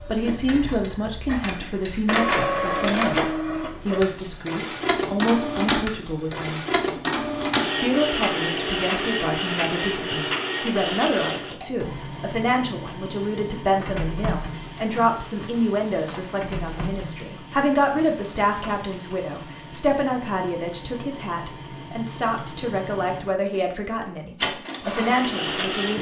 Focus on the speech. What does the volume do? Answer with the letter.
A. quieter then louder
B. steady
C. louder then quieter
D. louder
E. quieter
B.